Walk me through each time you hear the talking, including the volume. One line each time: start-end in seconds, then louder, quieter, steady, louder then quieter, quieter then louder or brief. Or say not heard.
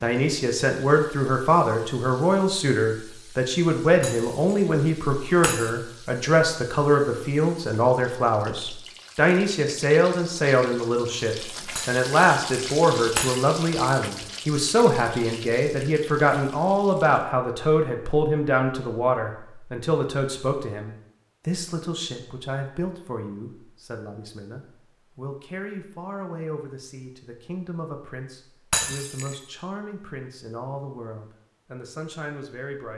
0.0-32.9 quieter.